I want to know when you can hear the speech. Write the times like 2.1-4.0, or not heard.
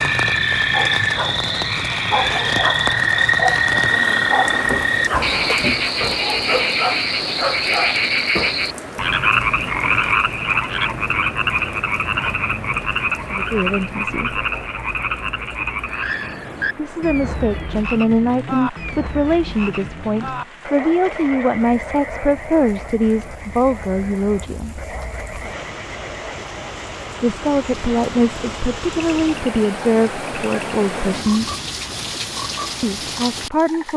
13.3-14.4, 16.8-24.9, 27.2-31.6, 32.8-33.9.